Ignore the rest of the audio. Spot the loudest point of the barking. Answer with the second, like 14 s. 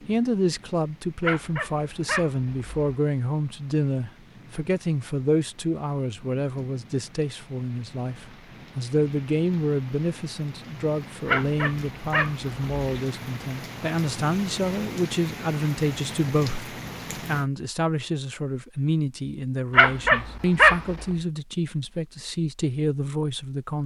21 s.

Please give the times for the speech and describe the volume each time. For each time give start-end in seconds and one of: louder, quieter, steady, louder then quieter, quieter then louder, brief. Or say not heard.
0.1-23.8 steady.